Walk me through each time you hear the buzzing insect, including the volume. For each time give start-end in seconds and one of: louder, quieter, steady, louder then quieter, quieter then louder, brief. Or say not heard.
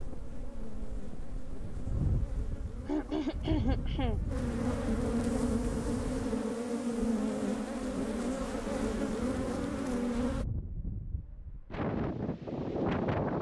0.0-10.4 louder.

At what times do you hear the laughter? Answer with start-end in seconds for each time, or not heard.
2.9-4.2.